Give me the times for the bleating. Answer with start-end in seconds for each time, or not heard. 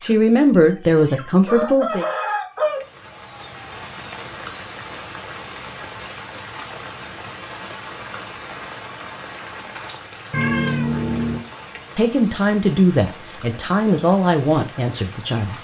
not heard.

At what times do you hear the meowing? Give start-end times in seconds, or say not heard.
10.3-11.4.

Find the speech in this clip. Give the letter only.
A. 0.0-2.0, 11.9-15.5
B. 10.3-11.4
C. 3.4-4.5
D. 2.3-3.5
A.